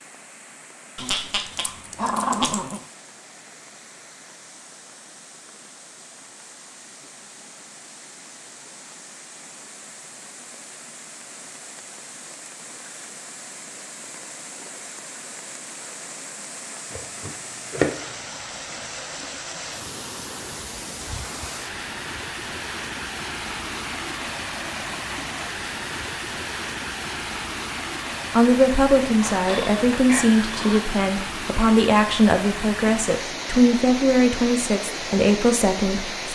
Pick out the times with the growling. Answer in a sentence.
You can hear the growling from 0.9 to 2.8 s and from 29.2 to 30.9 s.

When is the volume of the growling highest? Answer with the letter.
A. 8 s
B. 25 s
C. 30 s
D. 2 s
D.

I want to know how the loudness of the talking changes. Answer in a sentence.
The volume of the talking stays about the same.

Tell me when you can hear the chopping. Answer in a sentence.
The chopping can be heard from 16.9 to 18.1 s.